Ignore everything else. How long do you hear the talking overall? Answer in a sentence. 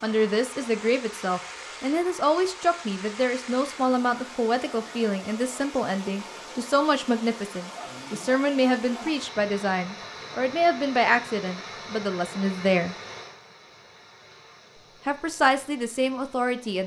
You can hear the talking for 15 seconds altogether.